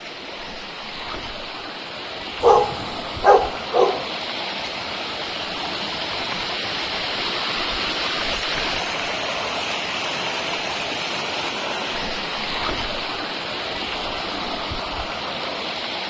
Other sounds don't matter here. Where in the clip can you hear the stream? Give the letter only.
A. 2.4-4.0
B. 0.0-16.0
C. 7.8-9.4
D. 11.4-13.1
B.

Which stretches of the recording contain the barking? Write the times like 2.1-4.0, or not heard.
2.4-4.0.